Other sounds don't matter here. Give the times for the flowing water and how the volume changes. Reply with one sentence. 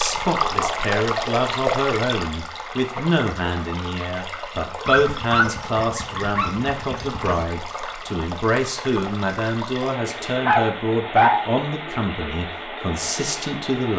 The flowing water can be heard from 0.0 to 13.9 s, getting quieter.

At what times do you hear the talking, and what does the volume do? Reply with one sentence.
You can hear the talking from 0.0 to 13.9 s, at a steady volume.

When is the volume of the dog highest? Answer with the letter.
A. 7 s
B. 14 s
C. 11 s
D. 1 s
C.